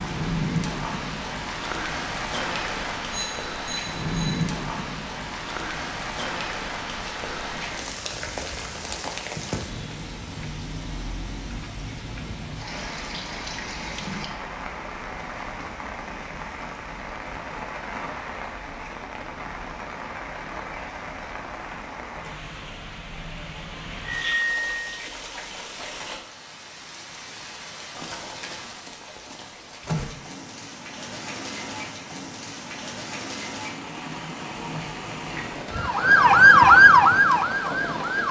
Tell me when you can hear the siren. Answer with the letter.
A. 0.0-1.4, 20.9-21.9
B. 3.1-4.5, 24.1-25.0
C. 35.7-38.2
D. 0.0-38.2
C.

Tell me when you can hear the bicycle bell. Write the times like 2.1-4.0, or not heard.
3.1-4.5, 24.1-25.0.